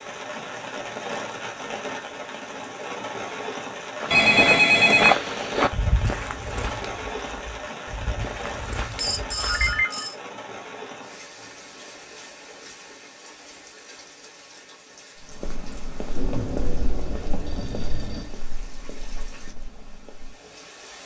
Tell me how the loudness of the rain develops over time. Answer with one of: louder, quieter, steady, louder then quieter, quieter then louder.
quieter.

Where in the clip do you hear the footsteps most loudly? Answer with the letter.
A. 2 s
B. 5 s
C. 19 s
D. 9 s
B.